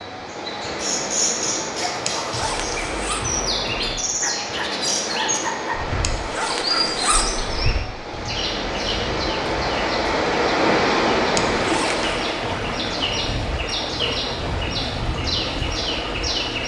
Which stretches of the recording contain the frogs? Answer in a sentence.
You can't hear the frogs here.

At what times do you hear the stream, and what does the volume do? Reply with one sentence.
You can hear the stream from 0.0 to 16.6 s, getting louder then quieter.